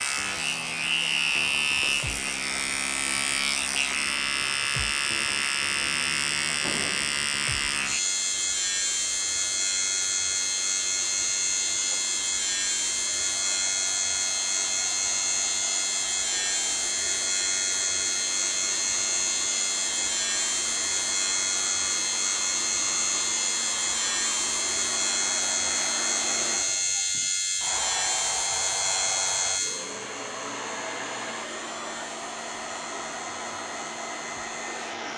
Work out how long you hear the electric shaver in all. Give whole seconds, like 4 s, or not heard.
35 s.